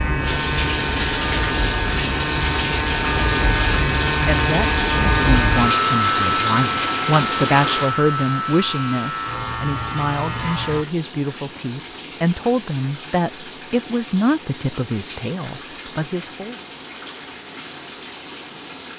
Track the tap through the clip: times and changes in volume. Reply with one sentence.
The tap can be heard from 0.0 to 18.9 s, getting quieter.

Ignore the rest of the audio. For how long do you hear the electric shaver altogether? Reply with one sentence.
You can hear the electric shaver for 11 seconds altogether.